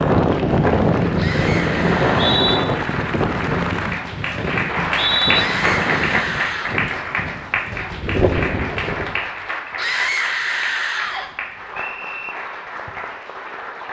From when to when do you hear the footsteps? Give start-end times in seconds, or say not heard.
not heard.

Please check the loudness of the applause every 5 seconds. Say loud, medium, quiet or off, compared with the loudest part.
loud, loud, medium.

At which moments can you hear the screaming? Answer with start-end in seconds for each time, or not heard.
1.1-2.5, 5.3-6.8, 9.8-11.2.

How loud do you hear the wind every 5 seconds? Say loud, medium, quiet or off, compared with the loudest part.
loud, medium, off.